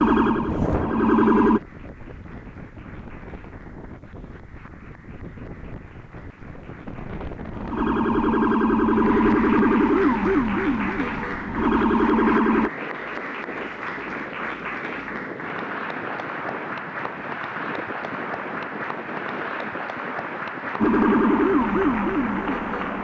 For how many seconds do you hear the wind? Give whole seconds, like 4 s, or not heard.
23 s.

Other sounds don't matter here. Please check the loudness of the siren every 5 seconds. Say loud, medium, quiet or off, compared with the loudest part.
loud, loud, loud, off, loud.